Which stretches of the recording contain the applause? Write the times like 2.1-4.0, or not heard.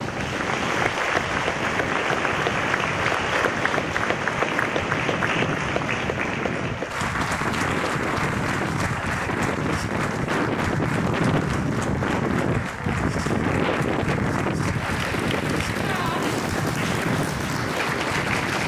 0.0-18.6.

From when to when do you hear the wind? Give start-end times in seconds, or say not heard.
0.0-18.6.